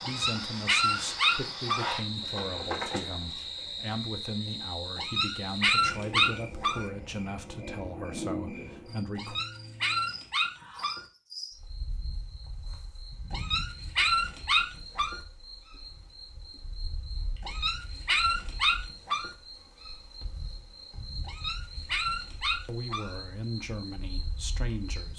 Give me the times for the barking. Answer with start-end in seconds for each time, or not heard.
0.0-1.9, 5.0-6.8, 9.2-11.1, 13.3-15.2, 17.4-19.4, 21.2-23.1.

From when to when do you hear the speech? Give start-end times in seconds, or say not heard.
0.0-9.3, 22.6-25.1.